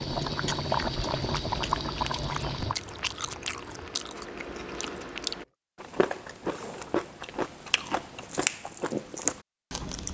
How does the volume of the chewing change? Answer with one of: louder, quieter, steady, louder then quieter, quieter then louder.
louder.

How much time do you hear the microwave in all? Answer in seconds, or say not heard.
not heard.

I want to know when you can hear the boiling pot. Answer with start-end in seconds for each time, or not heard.
0.0-5.5.